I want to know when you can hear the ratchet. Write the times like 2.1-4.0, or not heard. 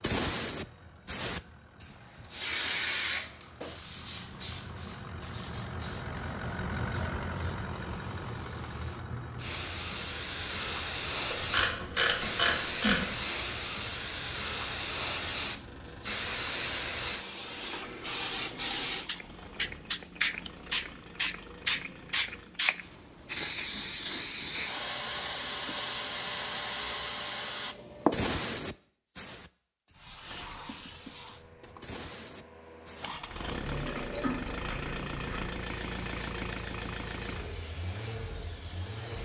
11.3-13.2, 33.5-35.5.